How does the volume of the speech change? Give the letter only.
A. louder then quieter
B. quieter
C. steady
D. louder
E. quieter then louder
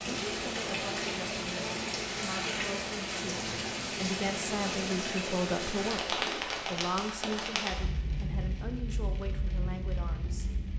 A.